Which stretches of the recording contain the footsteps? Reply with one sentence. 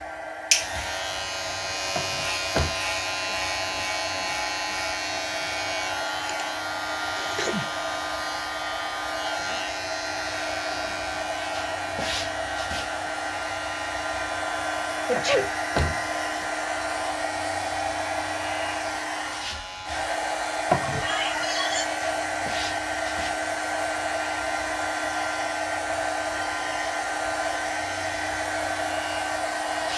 You can't hear the footsteps here.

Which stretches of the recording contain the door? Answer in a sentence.
The door can be heard from 1.9 to 2.8 s, from 15.2 to 16.4 s and from 20.7 to 21.1 s.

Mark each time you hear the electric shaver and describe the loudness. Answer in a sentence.
You can hear the electric shaver from 0.0 to 29.9 s, getting quieter.